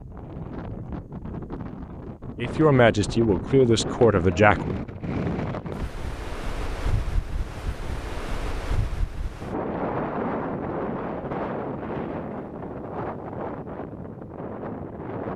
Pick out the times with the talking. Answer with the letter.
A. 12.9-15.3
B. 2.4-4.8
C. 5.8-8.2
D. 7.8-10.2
B.